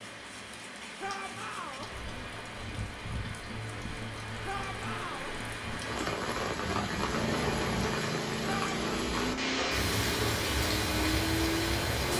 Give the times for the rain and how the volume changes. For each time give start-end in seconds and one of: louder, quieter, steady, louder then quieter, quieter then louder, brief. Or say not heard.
0.0-12.1 louder.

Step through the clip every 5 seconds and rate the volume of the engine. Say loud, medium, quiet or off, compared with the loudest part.
off, loud, loud.